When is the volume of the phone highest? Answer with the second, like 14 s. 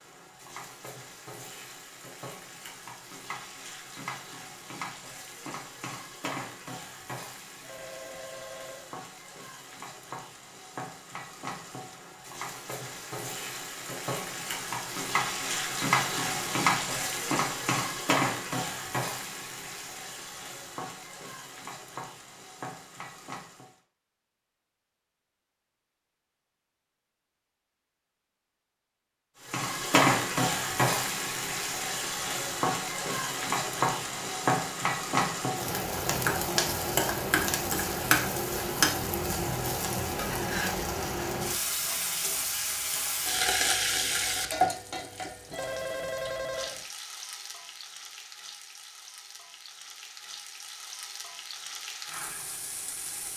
46 s.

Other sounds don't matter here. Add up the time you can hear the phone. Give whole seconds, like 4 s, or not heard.
3 s.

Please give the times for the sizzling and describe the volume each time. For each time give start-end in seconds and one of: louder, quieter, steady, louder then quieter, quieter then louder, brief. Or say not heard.
0.0-23.8 louder then quieter
29.4-53.3 quieter.